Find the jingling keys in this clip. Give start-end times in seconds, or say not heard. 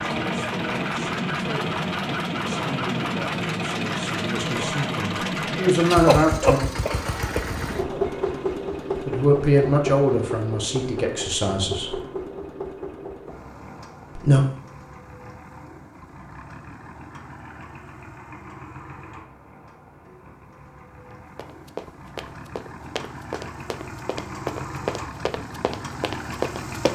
not heard.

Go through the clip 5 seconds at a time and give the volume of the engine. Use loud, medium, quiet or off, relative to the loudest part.
loud, loud, medium, quiet, quiet, medium.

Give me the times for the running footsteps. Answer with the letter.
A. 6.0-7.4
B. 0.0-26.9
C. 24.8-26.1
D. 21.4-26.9
D.